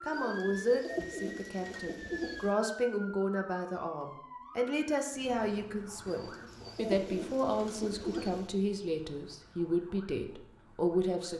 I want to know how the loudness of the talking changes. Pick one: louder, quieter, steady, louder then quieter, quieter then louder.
steady.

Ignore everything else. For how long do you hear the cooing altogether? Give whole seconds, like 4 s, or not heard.
5 s.